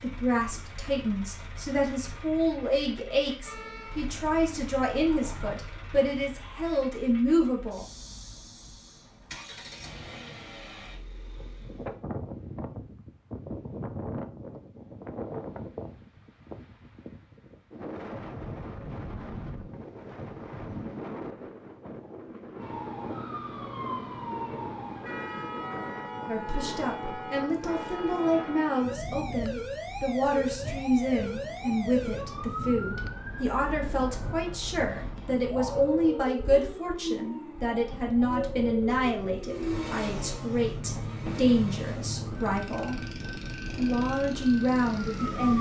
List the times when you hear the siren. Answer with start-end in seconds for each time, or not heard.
3.5-5.5, 22.6-45.5.